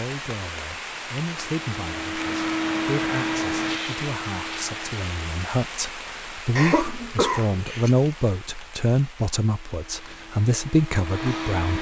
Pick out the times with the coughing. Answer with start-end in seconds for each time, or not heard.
6.5-7.9.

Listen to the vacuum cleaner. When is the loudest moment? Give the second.
3 s.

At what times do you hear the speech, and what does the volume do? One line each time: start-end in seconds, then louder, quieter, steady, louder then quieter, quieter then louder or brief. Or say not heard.
0.0-11.7 louder.